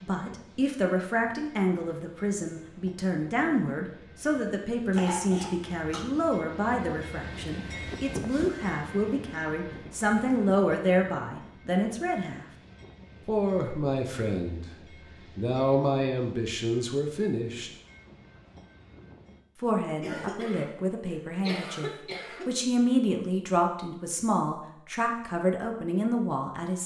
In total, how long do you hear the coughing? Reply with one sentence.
You can hear the coughing for 4 seconds altogether.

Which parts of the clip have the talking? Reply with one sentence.
You can hear the talking from 0.0 to 12.4 s, from 13.2 to 14.7 s, from 15.3 to 17.7 s and from 19.6 to 26.8 s.